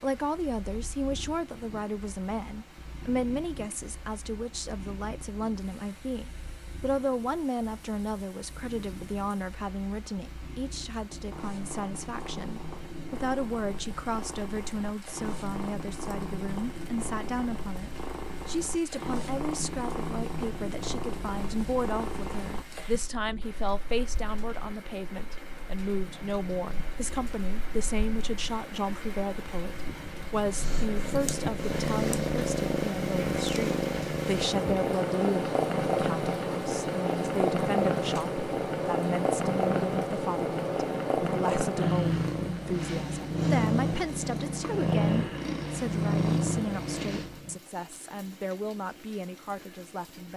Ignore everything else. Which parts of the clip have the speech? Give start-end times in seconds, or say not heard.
0.0-50.3.